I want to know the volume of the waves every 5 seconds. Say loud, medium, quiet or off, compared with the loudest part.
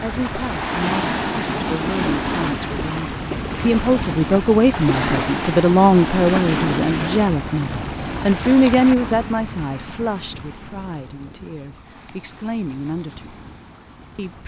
loud, loud, quiet.